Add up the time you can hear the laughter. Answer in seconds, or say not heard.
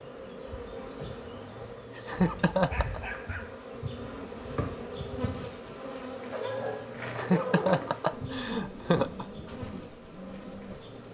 3 s.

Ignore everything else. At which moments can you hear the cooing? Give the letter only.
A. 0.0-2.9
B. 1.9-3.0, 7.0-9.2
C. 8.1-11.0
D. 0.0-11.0
C.